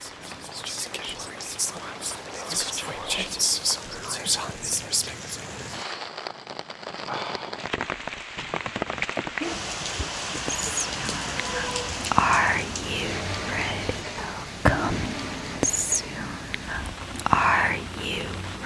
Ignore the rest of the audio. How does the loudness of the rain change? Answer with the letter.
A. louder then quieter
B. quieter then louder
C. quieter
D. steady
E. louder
A.